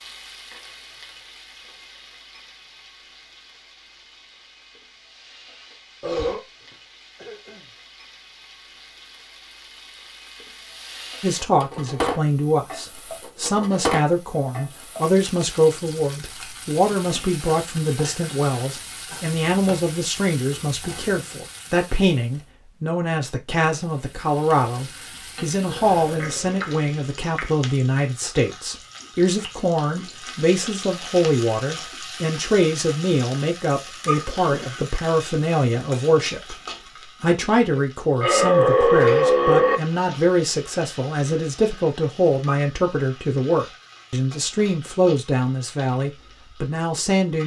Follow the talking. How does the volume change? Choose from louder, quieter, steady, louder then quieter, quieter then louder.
steady.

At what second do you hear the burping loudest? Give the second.
39 s.